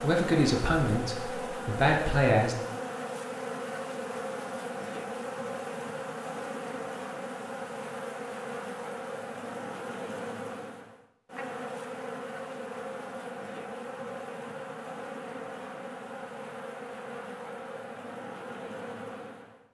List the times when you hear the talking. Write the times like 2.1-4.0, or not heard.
0.0-2.5.